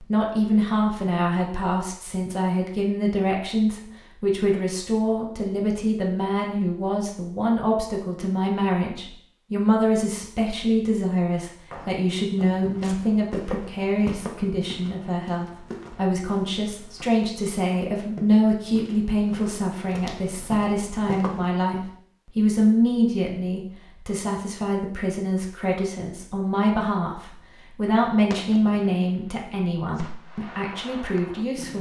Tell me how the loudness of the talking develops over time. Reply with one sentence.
The volume of the talking stays about the same.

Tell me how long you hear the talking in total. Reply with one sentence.
You can hear the talking for 32 seconds altogether.